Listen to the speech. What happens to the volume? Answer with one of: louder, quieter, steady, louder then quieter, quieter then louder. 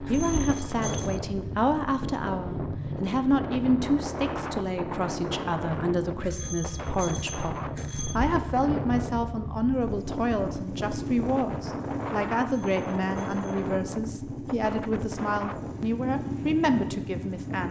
steady.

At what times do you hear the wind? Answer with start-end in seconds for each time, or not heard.
0.0-17.6.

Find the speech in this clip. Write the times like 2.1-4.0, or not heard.
0.1-17.6.